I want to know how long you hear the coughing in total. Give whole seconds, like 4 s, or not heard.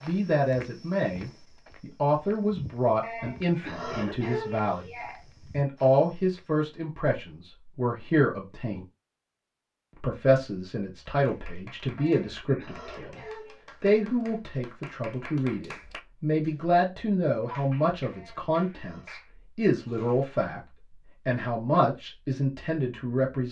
5 s.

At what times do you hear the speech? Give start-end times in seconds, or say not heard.
0.0-8.8, 9.9-13.2, 13.8-23.4.